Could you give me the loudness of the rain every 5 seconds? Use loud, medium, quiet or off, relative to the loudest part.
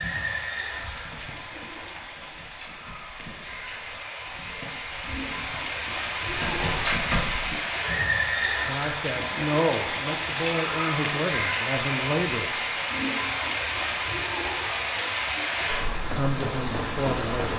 medium, loud, loud, loud.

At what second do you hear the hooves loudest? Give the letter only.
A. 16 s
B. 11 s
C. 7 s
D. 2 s
C.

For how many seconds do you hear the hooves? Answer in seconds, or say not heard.
7 s.